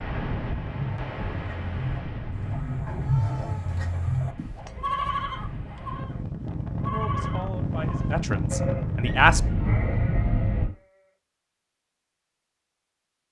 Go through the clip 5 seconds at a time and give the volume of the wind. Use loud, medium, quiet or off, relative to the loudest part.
medium, loud, off.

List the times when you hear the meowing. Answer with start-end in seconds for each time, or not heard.
9.0-10.7.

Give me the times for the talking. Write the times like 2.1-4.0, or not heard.
6.9-9.4.